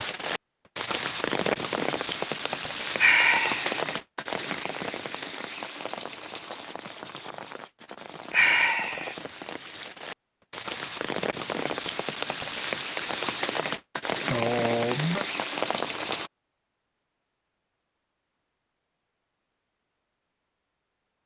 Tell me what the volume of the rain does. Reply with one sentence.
The loudness of the rain goes down, then up.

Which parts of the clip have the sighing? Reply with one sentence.
The sighing can be heard from 3.0 to 3.8 s, from 8.3 to 9.2 s and from 14.3 to 15.2 s.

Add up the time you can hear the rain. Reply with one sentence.
You can hear the rain for 16 seconds altogether.